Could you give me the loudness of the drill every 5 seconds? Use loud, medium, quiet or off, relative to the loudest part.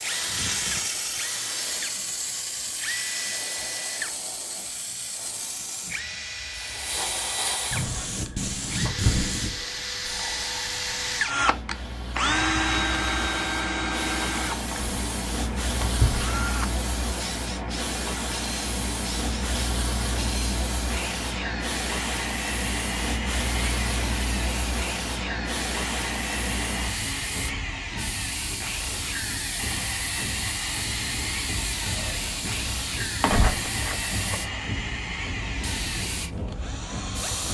medium, medium, loud, medium, medium, medium, medium, medium.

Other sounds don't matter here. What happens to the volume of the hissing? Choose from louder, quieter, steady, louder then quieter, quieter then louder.
steady.